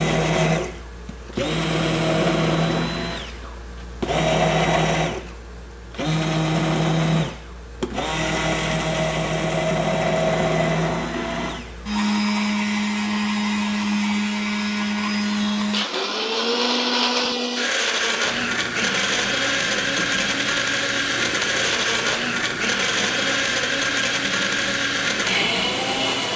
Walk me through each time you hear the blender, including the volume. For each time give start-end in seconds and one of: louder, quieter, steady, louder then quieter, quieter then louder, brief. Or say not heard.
0.0-26.3 steady.